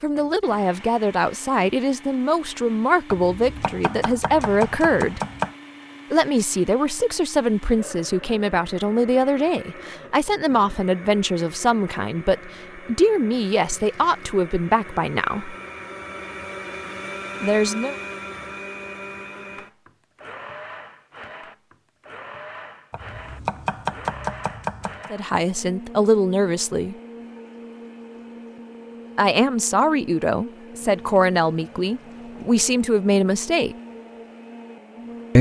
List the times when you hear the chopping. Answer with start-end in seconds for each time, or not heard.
3.1-5.5, 22.9-25.1.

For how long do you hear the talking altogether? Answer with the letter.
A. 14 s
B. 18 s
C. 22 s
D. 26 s
C.